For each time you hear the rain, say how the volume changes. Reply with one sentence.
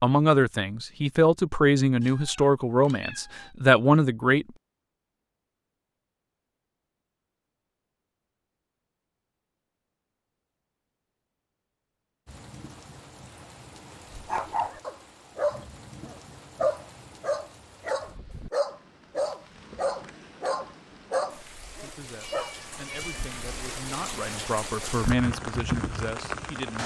You can hear the rain from 12.2 to 26.8 s, getting louder.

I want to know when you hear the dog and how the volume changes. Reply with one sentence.
The dog can be heard from 14.1 to 22.6 s, at a steady volume.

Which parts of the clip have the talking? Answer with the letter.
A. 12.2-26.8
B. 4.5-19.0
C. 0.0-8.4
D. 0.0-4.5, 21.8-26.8
D.